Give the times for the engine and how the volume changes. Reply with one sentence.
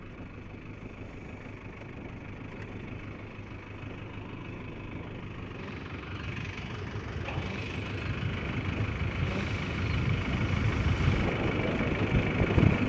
The engine can be heard from 0.0 to 12.8 s, getting louder.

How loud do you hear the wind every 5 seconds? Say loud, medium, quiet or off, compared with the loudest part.
quiet, medium, loud.